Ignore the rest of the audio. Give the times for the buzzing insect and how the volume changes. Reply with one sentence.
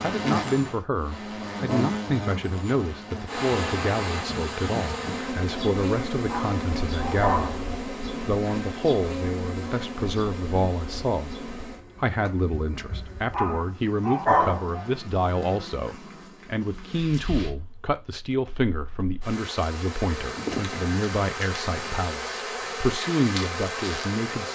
The buzzing insect can be heard from 0.0 to 24.4 s, getting quieter then louder.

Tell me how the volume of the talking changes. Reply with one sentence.
The volume of the talking stays about the same.